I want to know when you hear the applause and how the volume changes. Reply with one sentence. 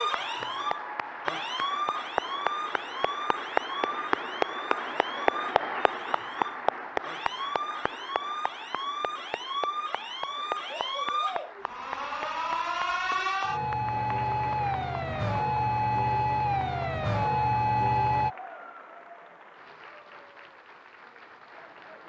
The applause can be heard from 0.0 to 22.0 s, getting quieter.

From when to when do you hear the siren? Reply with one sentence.
The siren can be heard from 0.0 to 18.3 s.